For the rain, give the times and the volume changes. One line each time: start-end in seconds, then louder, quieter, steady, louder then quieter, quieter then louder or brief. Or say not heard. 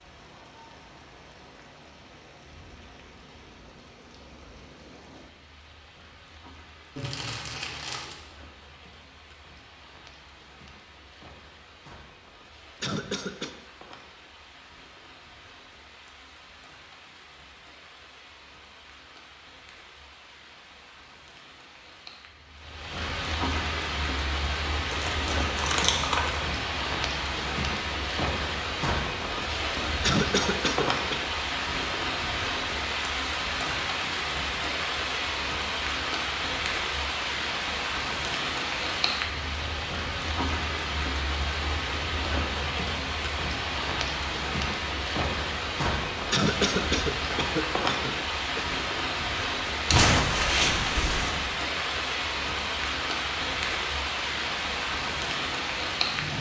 0.0-56.3 louder.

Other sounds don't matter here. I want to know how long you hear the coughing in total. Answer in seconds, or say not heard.
4 s.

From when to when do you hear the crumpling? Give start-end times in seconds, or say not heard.
7.0-8.2, 24.9-26.4, 49.9-51.3.